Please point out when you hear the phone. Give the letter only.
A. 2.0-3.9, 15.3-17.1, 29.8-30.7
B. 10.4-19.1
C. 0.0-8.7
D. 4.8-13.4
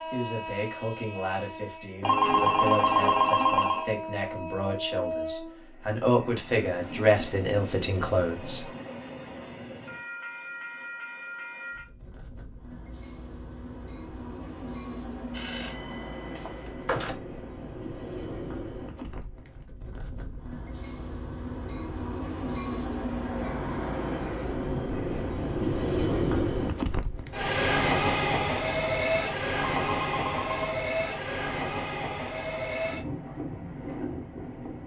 A.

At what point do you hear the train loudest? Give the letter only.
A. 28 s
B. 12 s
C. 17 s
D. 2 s
A.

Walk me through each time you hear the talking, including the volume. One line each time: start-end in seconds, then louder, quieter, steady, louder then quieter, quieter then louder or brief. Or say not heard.
0.0-8.7 louder.